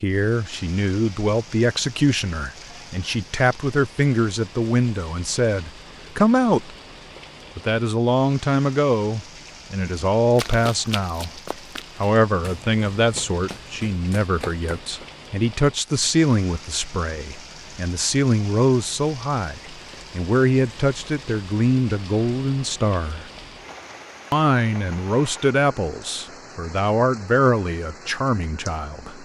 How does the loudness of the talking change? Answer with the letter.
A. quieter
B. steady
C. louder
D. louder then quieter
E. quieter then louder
B.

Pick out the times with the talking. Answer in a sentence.
The talking can be heard from 0.0 to 6.8 s, from 7.5 to 11.4 s, from 12.0 to 23.2 s and from 24.3 to 29.2 s.